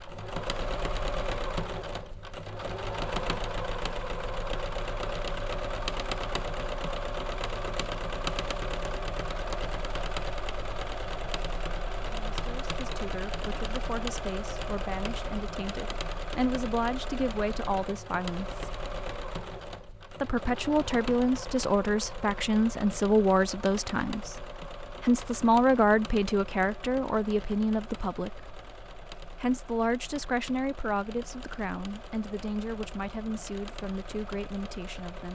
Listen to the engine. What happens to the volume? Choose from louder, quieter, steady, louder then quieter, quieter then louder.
quieter.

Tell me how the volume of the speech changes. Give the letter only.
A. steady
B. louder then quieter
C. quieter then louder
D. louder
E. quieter
B.